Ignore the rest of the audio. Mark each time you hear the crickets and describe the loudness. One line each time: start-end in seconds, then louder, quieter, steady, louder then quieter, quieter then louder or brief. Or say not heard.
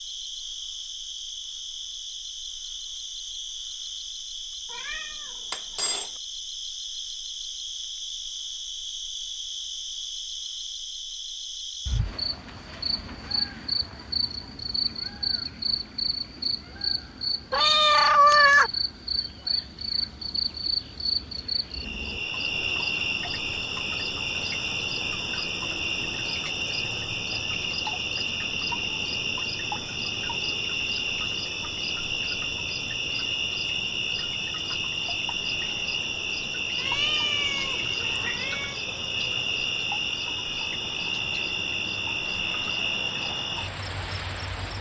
0.0-44.7 louder.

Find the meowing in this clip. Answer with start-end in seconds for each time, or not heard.
4.7-6.1, 17.5-18.7, 36.8-38.8.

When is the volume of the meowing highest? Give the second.
18 s.